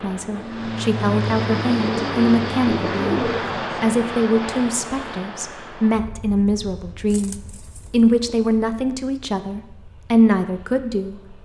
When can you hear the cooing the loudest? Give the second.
3 s.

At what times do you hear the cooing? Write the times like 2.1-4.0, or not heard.
1.8-3.5, 7.1-8.3.